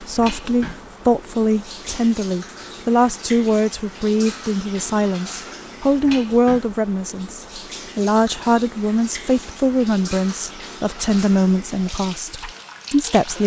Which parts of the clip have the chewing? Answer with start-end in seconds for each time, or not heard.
not heard.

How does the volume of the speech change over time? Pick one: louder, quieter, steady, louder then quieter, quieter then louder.
steady.